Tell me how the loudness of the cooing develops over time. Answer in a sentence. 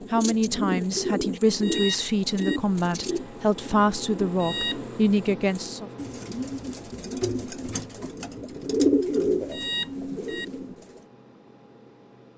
The loudness of the cooing goes down, then up.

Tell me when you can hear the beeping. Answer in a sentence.
The beeping can be heard from 1.6 to 2.6 s, from 4.4 to 4.9 s and from 9.5 to 10.4 s.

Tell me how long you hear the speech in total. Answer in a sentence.
You can hear the speech for 6 seconds altogether.